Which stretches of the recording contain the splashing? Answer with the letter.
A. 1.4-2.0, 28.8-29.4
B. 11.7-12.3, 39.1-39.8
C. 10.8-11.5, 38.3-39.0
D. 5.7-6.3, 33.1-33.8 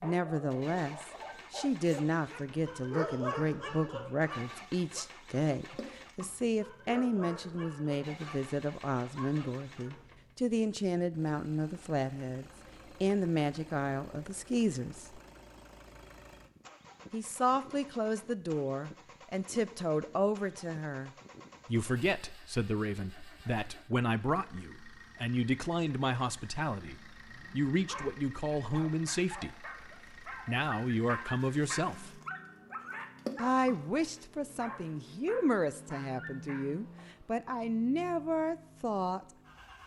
D.